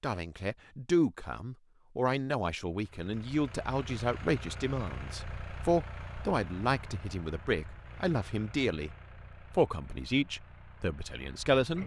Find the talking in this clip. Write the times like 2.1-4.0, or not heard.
0.0-8.9, 9.5-11.8.